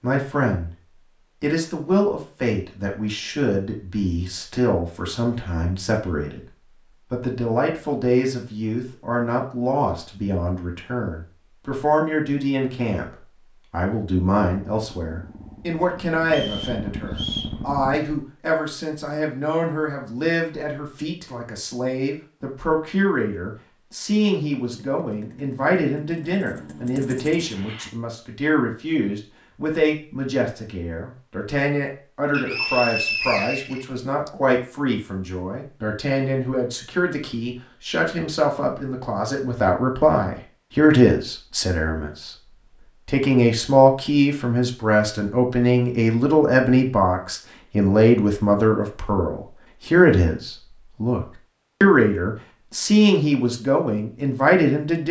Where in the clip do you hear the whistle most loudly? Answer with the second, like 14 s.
33 s.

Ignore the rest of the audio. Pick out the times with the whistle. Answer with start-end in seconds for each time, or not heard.
16.2-17.6, 32.3-34.3.